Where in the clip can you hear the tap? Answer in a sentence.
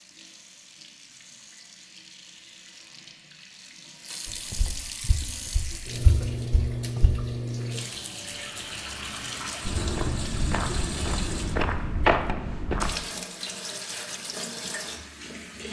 The tap can be heard from 0.0 to 15.6 s.